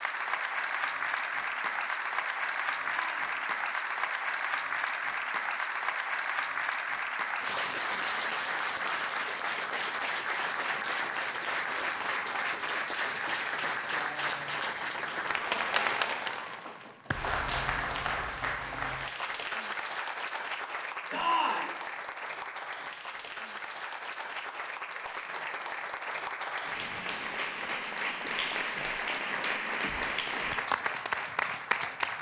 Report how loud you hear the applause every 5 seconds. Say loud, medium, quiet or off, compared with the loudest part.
loud, loud, loud, loud, medium, loud, loud.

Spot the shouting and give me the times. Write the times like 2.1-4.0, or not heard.
2.8-3.4, 21.1-21.8.